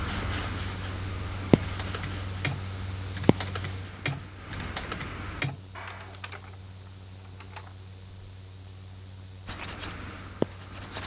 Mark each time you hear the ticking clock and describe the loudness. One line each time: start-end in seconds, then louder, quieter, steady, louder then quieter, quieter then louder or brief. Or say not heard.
not heard.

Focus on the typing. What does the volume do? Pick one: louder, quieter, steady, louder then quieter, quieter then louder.
quieter.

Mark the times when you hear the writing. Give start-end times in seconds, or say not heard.
0.0-5.5, 9.4-11.0.